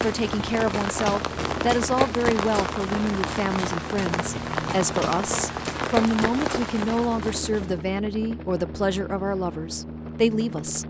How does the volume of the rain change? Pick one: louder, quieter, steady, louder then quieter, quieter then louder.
steady.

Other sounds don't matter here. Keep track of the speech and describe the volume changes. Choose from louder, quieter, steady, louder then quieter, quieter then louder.
steady.